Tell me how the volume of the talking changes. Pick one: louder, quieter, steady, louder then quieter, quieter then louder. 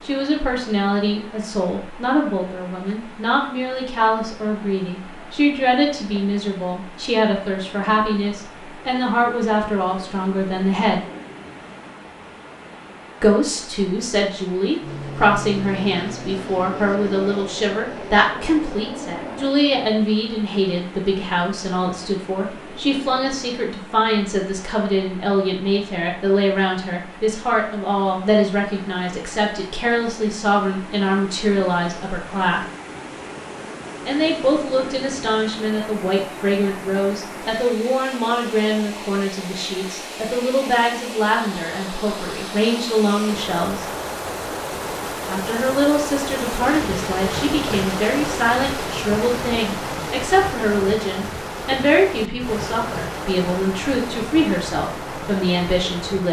steady.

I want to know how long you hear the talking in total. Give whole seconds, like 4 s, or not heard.
51 s.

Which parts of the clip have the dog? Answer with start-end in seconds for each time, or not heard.
not heard.